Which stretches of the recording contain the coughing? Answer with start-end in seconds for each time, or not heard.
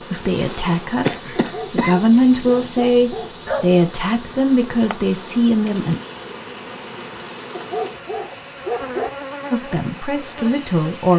1.1-2.5.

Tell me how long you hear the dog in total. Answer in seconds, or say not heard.
4 s.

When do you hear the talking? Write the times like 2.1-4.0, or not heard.
0.1-6.0, 9.5-11.1.